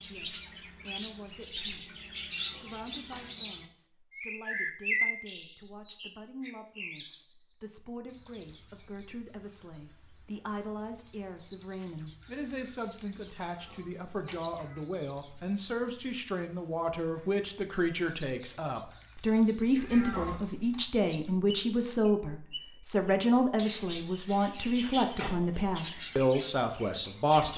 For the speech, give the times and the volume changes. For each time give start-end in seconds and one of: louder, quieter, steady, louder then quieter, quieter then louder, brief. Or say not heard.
0.1-27.5 louder.